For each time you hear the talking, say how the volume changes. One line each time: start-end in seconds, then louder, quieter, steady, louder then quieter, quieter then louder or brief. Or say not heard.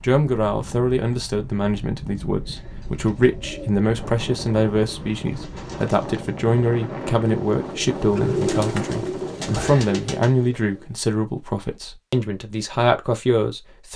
0.0-13.9 steady.